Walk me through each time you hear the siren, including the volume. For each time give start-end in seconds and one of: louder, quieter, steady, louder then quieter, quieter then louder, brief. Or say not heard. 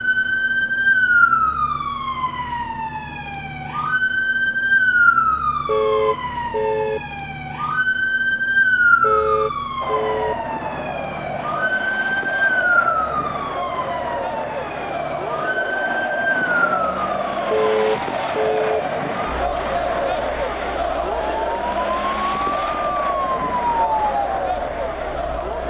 0.0-25.6 quieter.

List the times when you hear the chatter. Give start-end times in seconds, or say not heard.
9.8-25.6.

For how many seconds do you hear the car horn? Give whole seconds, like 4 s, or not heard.
4 s.